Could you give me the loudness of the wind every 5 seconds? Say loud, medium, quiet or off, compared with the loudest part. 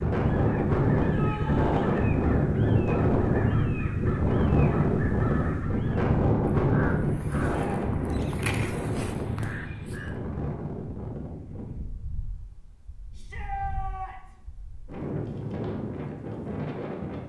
loud, loud, quiet, medium.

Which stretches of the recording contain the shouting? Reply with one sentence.
The shouting can be heard from 1.0 to 1.9 s, from 7.3 to 7.8 s and from 13.1 to 14.3 s.